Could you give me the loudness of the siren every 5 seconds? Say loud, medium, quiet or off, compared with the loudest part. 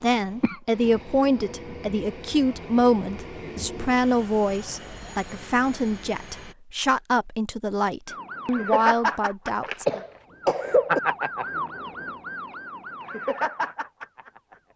off, loud, loud.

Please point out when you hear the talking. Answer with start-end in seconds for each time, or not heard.
0.0-10.0.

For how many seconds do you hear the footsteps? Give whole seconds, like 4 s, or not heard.
not heard.